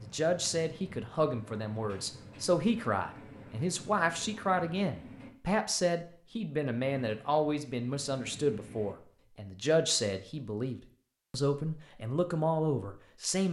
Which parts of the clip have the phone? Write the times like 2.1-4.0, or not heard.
not heard.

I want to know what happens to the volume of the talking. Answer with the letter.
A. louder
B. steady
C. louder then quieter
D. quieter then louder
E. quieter
B.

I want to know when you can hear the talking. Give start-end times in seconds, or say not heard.
0.0-13.4.